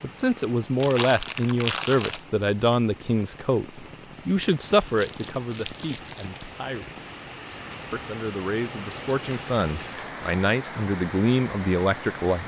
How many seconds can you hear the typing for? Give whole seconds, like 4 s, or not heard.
not heard.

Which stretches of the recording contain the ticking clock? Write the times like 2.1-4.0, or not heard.
not heard.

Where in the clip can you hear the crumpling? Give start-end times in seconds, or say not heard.
0.8-2.2, 5.0-6.6, 8.9-10.6.